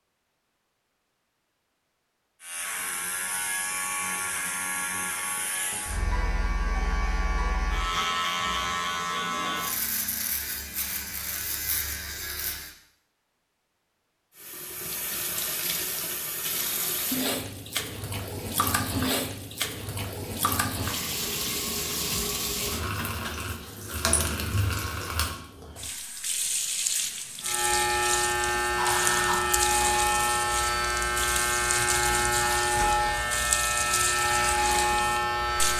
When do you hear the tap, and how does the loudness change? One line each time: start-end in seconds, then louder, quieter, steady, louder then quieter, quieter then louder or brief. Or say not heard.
14.3-35.7 steady.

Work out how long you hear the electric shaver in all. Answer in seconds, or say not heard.
19 s.